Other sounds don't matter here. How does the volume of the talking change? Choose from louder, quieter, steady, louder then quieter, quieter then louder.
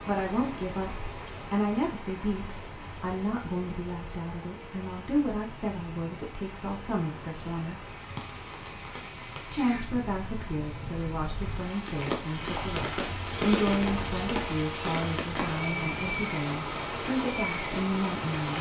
steady.